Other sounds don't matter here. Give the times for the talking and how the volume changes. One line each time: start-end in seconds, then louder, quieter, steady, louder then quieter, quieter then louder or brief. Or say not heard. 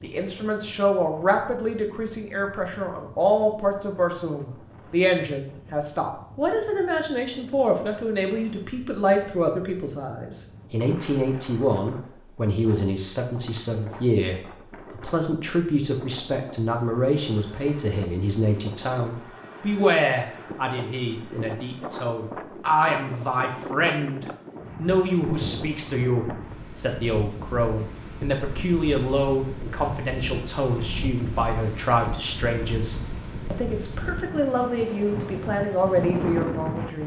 0.0-37.0 steady.